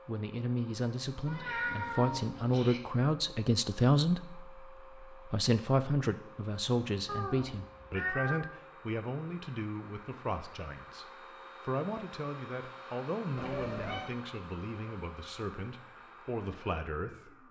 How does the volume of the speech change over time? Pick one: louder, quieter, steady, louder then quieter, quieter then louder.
quieter.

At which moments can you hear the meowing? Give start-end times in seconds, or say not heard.
1.2-2.8, 7.0-8.4, 13.3-14.2.